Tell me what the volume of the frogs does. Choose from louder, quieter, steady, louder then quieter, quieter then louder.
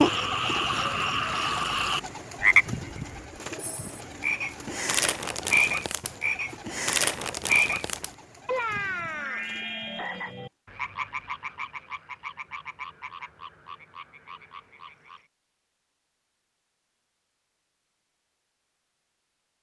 quieter.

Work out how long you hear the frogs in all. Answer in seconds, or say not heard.
15 s.